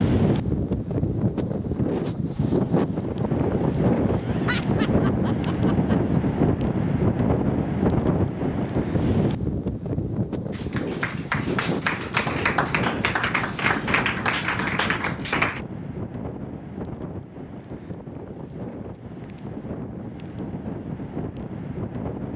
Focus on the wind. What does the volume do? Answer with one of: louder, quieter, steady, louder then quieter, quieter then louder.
quieter.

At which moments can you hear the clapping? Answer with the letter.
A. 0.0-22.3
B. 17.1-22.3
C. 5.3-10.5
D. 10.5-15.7
D.